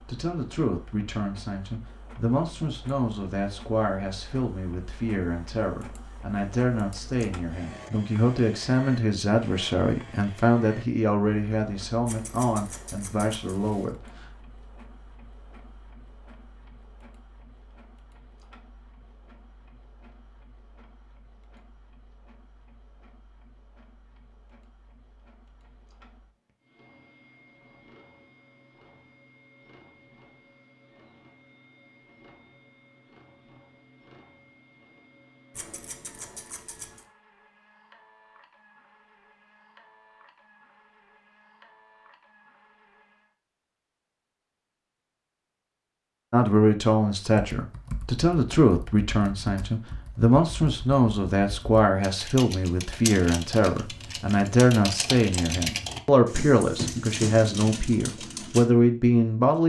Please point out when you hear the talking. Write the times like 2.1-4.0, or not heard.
0.1-14.2, 46.3-59.6.